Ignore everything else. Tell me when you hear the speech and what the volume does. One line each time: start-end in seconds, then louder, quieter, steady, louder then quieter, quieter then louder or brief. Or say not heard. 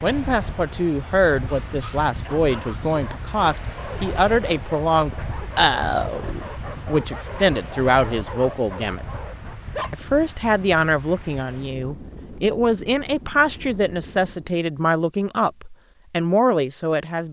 0.0-9.1 steady
9.9-17.2 steady.